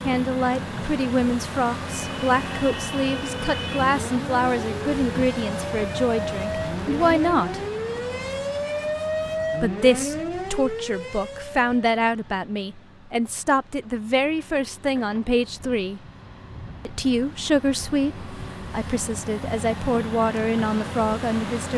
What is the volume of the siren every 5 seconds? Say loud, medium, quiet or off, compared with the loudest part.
medium, loud, loud, off, off.